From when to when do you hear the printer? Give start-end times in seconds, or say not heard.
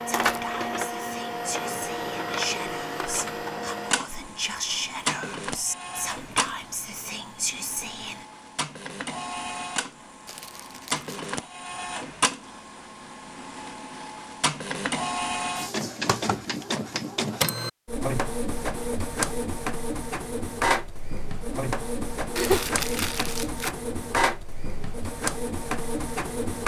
0.0-26.6.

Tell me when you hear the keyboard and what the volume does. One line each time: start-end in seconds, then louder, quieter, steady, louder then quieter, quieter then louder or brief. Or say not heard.
not heard.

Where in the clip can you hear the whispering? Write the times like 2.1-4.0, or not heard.
0.1-8.2.